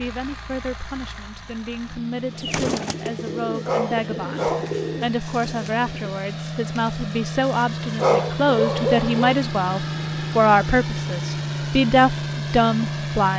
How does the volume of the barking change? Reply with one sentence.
The loudness of the barking goes down, then up.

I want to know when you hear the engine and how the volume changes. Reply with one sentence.
You can hear the engine from 0.0 to 13.3 s, getting louder.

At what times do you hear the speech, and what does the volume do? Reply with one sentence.
The speech can be heard from 0.0 to 13.3 s, getting louder.